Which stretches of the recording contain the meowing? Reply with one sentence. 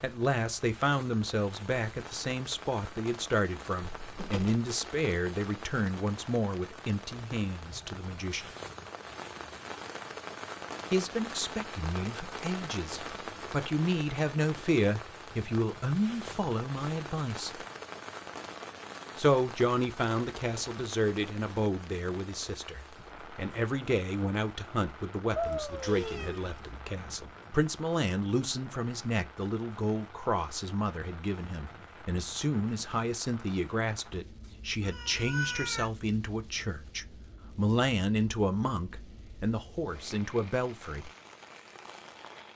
The meowing can be heard from 3.9 to 4.6 s, from 25.4 to 26.6 s and from 34.8 to 35.9 s.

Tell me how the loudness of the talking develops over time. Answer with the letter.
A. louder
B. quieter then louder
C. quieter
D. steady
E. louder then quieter
D.